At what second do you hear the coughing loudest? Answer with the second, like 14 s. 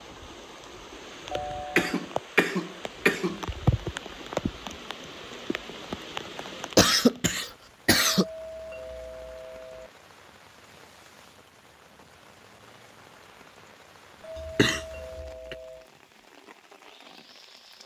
7 s.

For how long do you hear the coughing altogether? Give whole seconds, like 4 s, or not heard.
4 s.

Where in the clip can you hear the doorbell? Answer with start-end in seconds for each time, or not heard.
1.3-2.0, 8.1-9.9, 14.2-15.9.